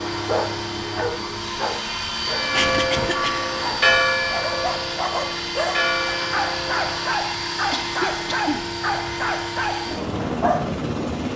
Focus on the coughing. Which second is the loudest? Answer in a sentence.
The loudest moment of the coughing is at 3 seconds.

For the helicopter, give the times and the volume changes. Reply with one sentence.
The helicopter can be heard from 0.0 to 11.3 s, at a steady volume.